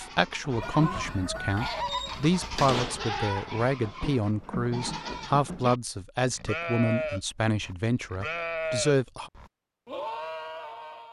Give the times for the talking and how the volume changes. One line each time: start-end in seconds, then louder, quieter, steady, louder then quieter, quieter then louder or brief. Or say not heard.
0.0-9.3 steady.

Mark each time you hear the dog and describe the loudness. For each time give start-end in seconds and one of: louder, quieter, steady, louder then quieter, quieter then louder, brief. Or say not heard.
not heard.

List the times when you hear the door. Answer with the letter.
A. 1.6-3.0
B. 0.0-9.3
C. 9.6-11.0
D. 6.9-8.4
A.